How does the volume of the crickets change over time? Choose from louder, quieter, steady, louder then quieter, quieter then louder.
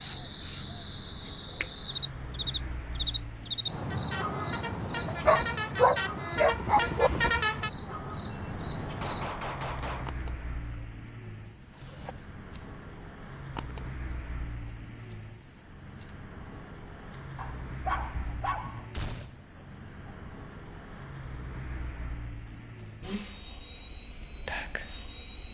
quieter then louder.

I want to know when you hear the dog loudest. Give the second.
6 s.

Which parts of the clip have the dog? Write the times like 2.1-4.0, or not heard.
5.0-7.1, 17.4-18.9.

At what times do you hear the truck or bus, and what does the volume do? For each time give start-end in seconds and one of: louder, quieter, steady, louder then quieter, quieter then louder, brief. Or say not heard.
0.0-25.4 louder then quieter.